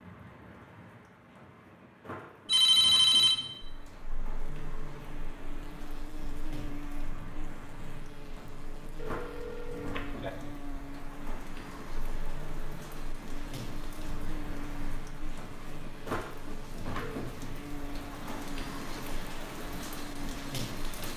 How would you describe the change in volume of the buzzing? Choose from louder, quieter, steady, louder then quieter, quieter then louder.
steady.